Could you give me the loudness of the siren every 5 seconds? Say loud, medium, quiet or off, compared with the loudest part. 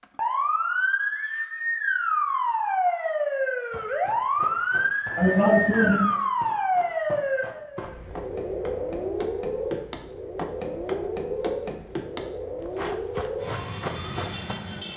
loud, loud, medium.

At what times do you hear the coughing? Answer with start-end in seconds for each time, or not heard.
5.2-6.1.